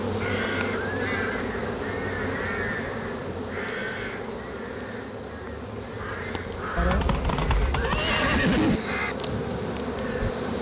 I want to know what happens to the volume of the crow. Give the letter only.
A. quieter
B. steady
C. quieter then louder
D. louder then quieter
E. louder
C.